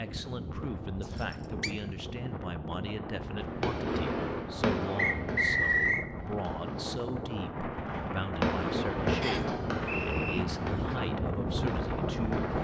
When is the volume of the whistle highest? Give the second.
6 s.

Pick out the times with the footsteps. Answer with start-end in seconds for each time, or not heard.
not heard.